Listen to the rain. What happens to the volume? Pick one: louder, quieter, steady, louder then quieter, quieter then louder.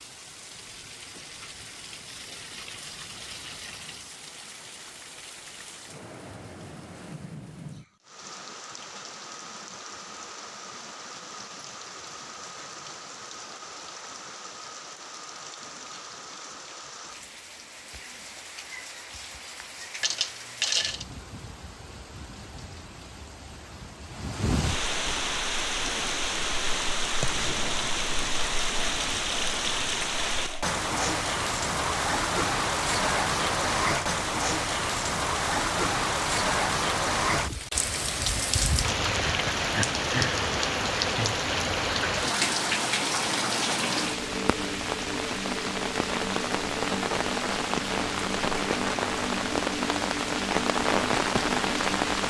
louder.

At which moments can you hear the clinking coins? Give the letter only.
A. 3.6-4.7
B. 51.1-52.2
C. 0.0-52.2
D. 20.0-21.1
D.